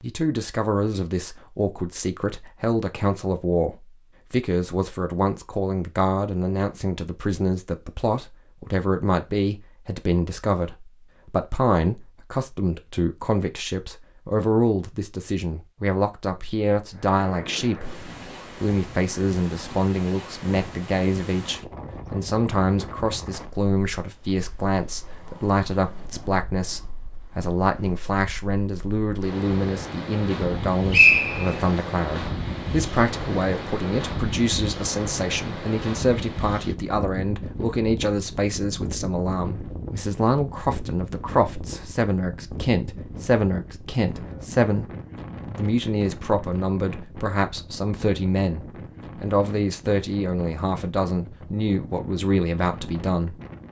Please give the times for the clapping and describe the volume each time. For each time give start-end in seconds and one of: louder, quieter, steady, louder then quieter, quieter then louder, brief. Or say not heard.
not heard.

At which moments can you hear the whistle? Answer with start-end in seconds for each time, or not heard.
30.5-31.7.